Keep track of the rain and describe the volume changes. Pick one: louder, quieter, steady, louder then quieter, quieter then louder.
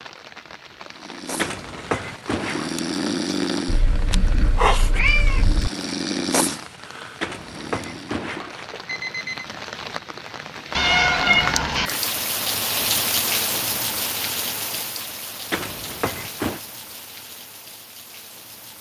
louder then quieter.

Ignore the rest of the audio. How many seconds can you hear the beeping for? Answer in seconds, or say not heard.
5 s.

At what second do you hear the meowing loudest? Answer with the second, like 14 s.
11 s.